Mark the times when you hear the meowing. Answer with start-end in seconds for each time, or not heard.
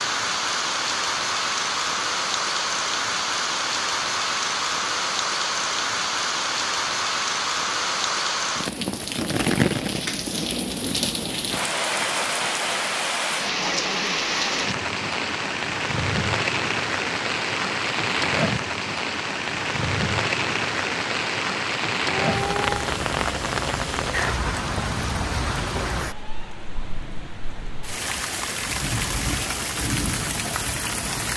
22.1-22.8.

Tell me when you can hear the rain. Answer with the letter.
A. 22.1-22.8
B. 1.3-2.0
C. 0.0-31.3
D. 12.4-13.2
C.